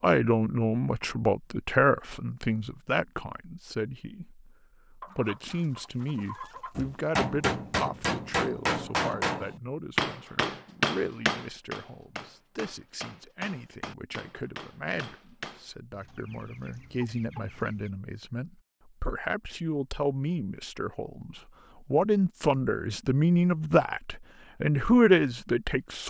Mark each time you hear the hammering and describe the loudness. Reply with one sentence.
You can hear the hammering from 6.8 to 15.7 s, getting quieter.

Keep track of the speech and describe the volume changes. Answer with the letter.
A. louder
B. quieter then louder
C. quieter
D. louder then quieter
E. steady
B.